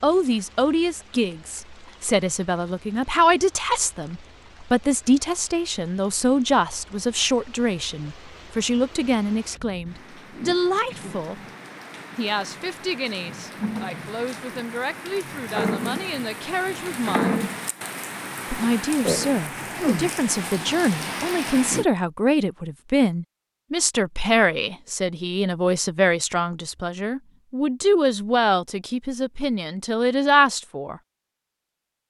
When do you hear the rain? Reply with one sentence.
You can hear the rain from 0.0 to 21.9 s.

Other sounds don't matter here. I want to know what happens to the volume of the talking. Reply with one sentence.
The volume of the talking goes down, then up.